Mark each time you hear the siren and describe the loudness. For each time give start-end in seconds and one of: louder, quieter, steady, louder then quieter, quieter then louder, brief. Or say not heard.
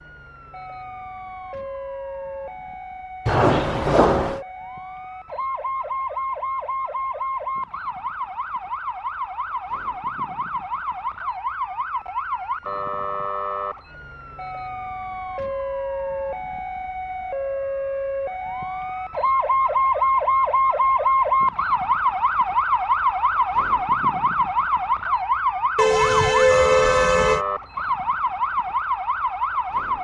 0.0-29.9 louder.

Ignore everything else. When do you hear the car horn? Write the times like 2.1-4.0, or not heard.
3.2-4.4, 25.8-27.4.